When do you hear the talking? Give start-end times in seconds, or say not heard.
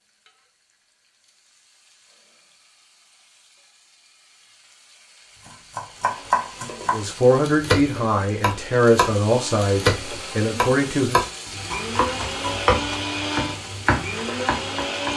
6.9-11.2.